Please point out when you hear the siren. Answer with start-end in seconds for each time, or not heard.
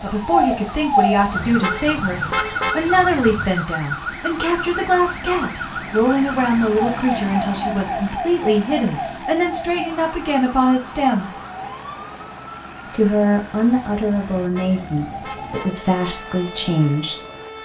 0.0-17.6.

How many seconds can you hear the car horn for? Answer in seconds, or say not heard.
4 s.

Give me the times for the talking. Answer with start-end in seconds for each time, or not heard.
0.0-11.3, 12.9-17.1.